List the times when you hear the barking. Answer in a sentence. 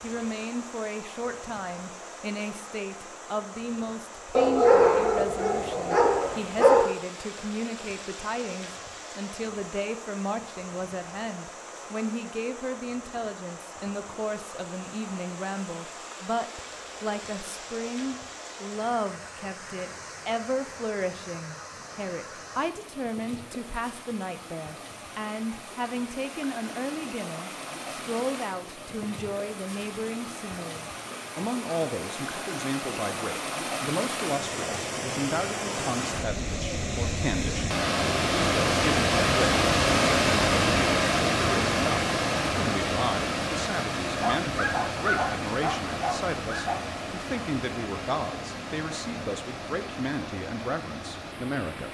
You can hear the barking from 4.3 to 6.9 s and from 44.2 to 46.8 s.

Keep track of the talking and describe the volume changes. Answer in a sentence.
The volume of the talking stays about the same.